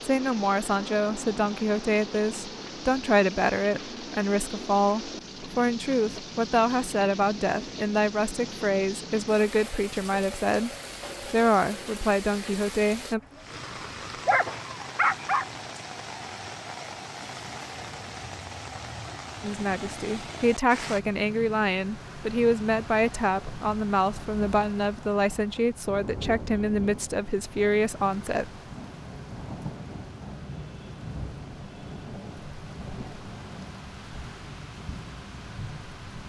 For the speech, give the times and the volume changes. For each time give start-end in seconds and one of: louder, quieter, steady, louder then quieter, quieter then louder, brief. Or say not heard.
0.0-13.2 steady
19.4-28.4 steady.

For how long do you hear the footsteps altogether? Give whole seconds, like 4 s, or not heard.
not heard.